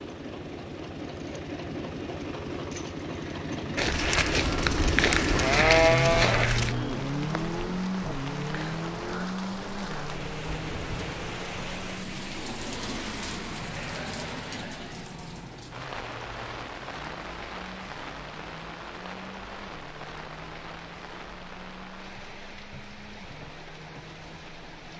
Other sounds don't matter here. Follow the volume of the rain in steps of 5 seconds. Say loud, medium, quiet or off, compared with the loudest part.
medium, loud, loud, loud, medium.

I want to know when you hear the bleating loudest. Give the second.
6 s.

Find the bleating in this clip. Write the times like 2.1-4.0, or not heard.
3.8-6.8.